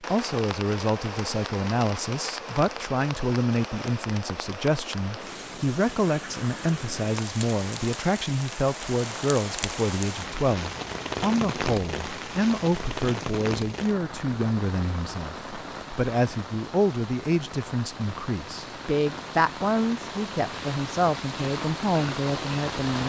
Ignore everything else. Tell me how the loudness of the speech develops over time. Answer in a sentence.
The loudness of the speech stays about the same.